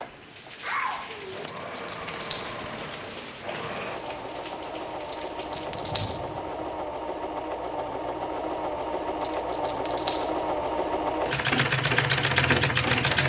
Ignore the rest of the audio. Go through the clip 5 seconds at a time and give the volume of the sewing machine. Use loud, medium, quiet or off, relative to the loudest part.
quiet, medium, loud.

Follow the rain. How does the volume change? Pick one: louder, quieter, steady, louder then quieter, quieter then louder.
quieter.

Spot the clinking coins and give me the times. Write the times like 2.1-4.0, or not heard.
1.4-2.6, 5.0-6.3, 9.2-10.4.